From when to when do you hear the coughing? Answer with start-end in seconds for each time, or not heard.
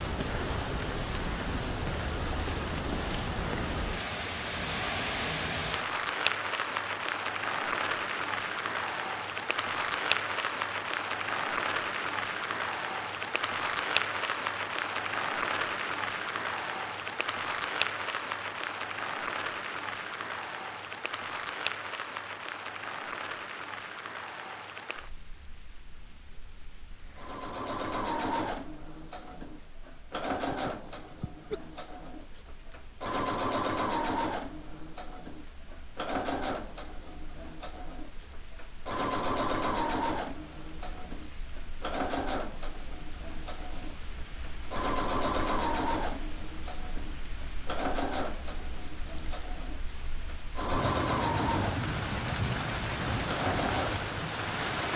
30.5-31.6.